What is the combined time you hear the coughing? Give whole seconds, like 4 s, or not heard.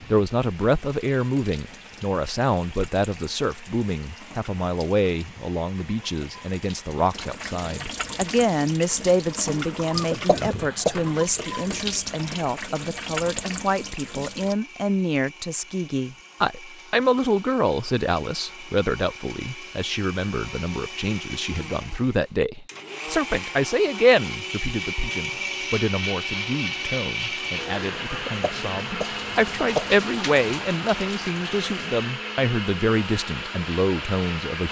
3 s.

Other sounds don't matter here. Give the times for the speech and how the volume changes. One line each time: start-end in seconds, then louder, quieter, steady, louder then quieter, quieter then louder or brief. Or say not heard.
0.1-34.6 steady.